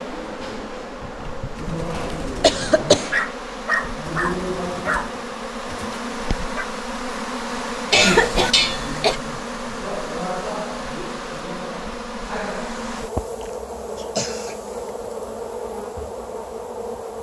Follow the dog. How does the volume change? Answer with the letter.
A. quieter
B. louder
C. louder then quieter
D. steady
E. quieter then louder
C.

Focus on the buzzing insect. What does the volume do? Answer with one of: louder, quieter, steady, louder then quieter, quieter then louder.
steady.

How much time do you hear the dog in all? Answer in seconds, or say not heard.
5 s.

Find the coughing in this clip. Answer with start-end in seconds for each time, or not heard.
2.4-3.1, 7.9-9.2, 13.4-14.6.